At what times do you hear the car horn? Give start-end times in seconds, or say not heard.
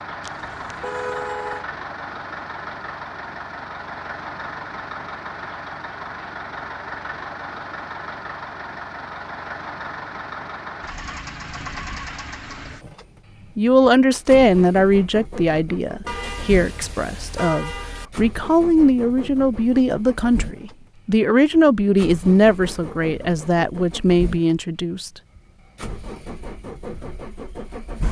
0.2-1.6, 16.1-18.1.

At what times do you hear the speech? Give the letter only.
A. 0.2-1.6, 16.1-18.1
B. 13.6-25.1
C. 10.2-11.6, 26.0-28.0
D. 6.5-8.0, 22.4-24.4
B.